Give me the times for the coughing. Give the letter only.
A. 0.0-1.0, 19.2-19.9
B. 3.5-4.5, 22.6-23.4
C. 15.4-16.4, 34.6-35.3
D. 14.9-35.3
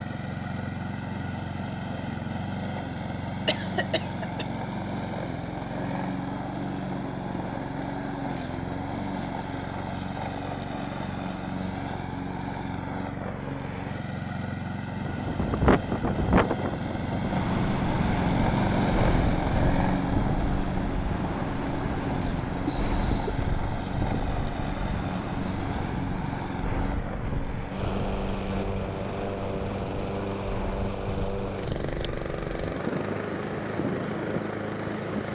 B.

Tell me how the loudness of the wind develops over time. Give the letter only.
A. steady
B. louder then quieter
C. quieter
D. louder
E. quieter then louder
C.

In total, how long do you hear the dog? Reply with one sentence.
You can't hear the dog here.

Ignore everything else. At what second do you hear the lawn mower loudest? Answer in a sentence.
The volume of the lawn mower peaks at 19 seconds.